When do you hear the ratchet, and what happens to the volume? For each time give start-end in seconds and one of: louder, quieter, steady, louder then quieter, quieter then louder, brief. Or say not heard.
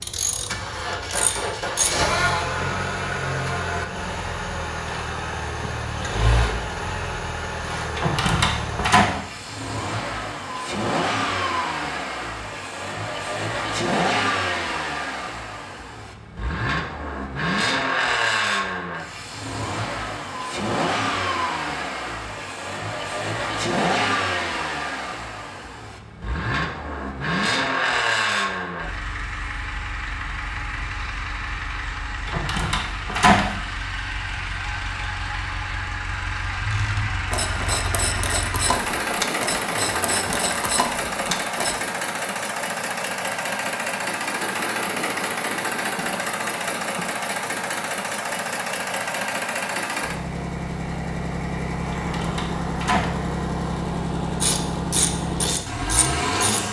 0.0-1.9 brief
36.6-41.8 steady
54.4-56.6 brief.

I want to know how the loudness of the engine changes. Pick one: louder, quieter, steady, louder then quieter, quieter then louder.
steady.